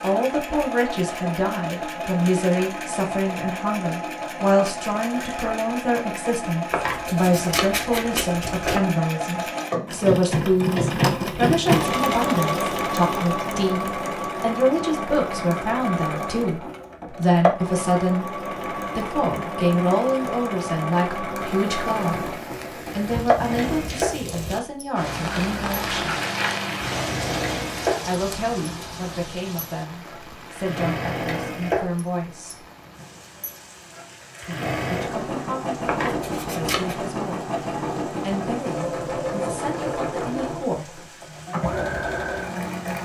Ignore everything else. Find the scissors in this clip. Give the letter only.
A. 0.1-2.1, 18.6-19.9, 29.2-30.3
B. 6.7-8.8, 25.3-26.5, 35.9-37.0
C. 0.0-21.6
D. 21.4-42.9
B.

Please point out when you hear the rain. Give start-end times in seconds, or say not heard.
21.4-42.9.